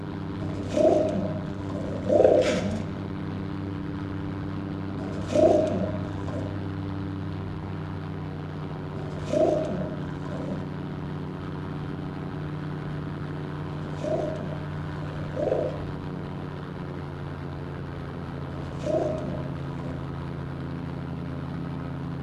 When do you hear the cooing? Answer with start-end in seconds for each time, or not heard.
0.4-2.8, 5.0-6.5, 8.9-10.7, 13.7-15.8, 18.4-20.1.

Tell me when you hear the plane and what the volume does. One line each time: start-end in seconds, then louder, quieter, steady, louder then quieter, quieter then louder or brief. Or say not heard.
0.0-22.1 steady.